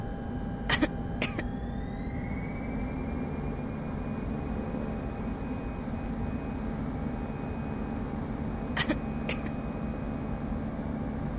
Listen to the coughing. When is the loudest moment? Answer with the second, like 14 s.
1 s.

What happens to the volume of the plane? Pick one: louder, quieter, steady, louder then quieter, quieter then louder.
steady.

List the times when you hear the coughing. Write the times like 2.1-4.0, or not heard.
0.7-1.4, 8.8-9.5.